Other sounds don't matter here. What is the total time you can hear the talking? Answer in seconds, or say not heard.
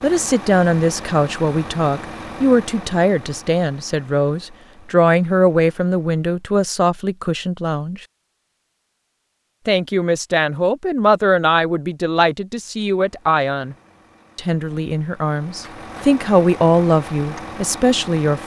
16 s.